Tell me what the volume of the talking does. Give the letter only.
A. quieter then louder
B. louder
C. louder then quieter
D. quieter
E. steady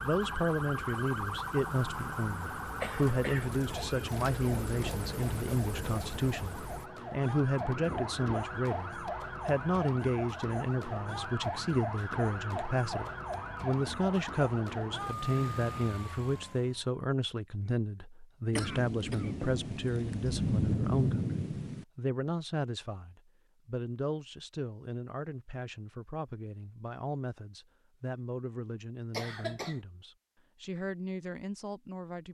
D.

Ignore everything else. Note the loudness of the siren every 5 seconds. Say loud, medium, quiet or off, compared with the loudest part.
loud, loud, loud, loud, off, off, off.